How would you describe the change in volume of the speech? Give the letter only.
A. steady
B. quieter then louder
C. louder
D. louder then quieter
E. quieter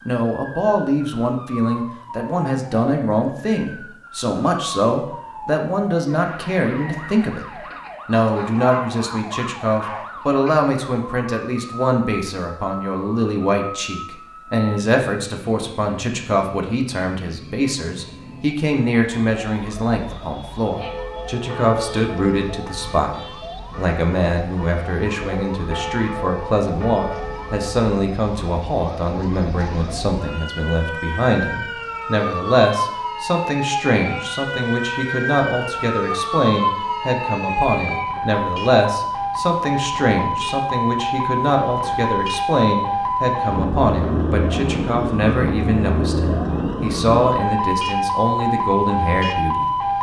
A.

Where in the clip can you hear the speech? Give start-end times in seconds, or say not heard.
0.1-49.6.